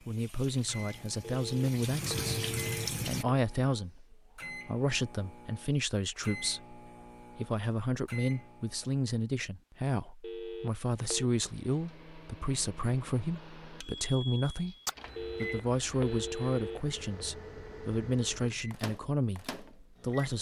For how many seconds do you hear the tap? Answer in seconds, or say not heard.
3 s.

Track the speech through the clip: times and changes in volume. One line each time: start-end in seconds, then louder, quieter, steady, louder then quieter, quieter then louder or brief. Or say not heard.
0.1-20.3 steady.